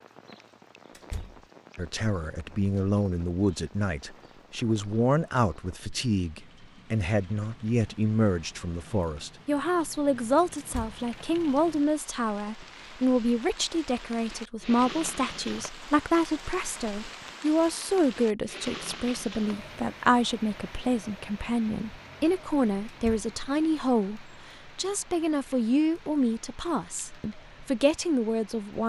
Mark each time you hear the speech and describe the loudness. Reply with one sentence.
The speech can be heard from 1.8 to 28.8 s, at a steady volume.